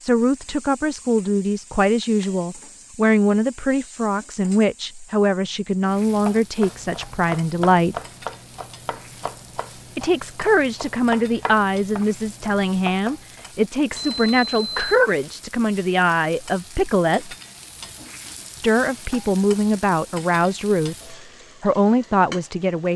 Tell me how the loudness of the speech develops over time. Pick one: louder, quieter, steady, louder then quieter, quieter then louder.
steady.